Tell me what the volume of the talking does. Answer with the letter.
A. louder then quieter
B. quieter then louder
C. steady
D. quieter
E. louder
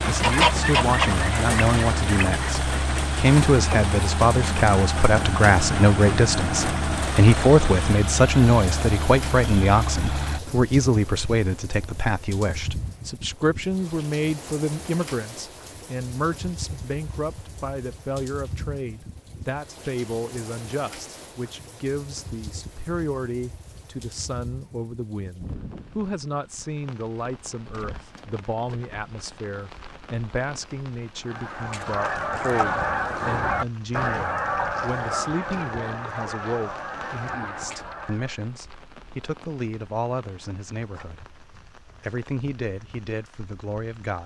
D.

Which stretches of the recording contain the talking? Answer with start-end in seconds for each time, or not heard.
0.0-44.2.